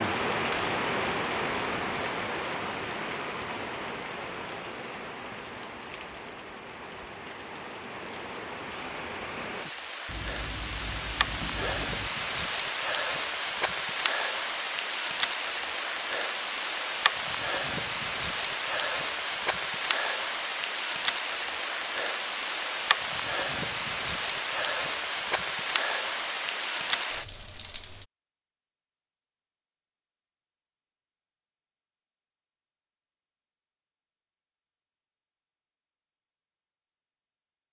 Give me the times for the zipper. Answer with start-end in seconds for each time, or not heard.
10.1-12.1.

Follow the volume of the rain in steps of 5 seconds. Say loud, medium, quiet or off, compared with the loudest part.
loud, medium, loud, loud, loud, loud, off, off.